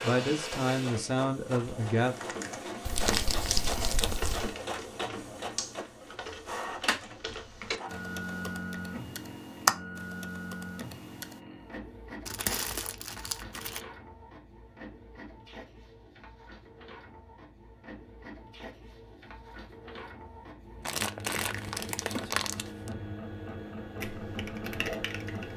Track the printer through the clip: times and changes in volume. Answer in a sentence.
The printer can be heard from 0.0 to 25.5 s, getting quieter then louder.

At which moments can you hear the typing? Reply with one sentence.
You can hear the typing from 1.9 to 11.3 s and from 24.0 to 25.5 s.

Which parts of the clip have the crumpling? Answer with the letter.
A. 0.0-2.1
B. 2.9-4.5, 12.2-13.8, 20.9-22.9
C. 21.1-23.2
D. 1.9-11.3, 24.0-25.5
B.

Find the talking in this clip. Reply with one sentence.
You can hear the talking from 0.0 to 2.1 s.